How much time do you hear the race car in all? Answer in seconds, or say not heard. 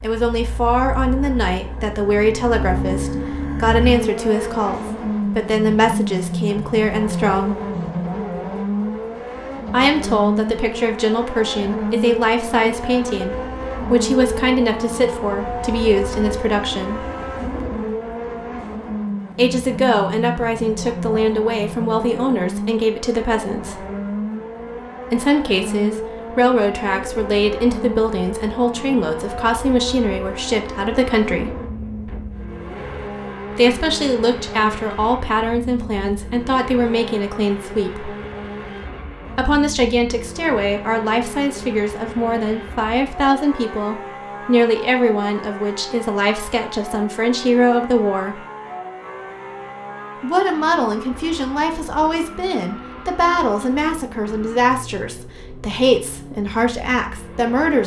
58 s.